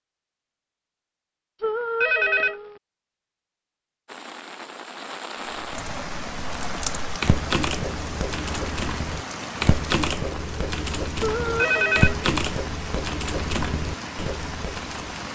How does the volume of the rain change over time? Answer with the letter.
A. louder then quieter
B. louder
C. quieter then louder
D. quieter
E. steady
E.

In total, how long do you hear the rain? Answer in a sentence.
The rain can be heard for 11 seconds in total.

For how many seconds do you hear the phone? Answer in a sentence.
You can hear the phone for 2 seconds altogether.